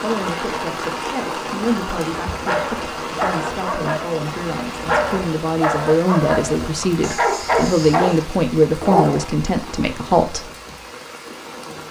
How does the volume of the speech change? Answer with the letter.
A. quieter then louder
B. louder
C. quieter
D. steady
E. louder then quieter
B.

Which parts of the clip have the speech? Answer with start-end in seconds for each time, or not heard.
0.0-10.5.